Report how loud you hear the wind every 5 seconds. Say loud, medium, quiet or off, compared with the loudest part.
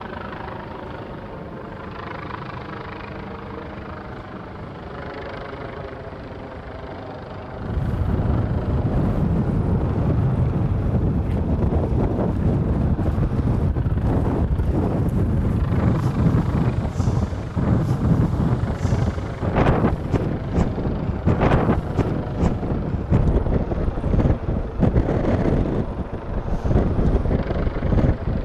quiet, medium, loud, loud, loud, loud.